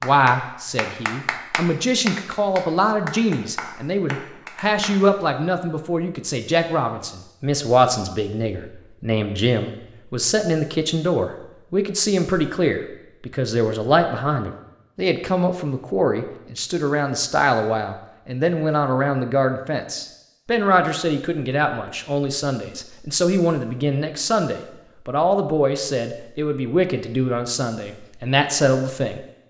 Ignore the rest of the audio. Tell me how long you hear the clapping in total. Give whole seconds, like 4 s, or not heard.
5 s.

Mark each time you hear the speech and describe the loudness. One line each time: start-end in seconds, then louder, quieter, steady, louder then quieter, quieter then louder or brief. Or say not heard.
0.0-29.2 steady.